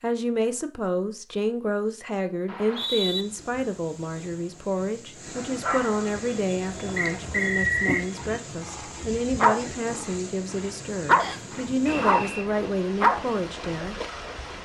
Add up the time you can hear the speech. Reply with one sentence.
The speech can be heard for 14 seconds in total.